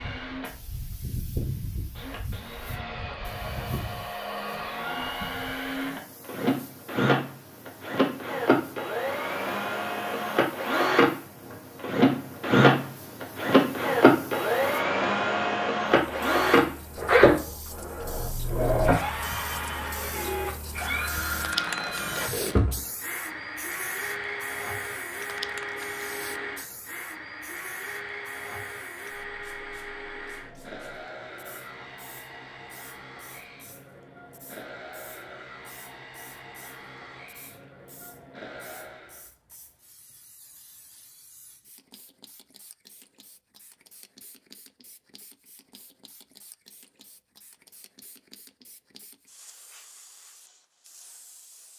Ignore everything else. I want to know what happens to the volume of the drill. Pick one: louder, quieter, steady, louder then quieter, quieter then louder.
louder then quieter.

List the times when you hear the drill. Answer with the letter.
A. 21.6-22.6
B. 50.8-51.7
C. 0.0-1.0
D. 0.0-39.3
D.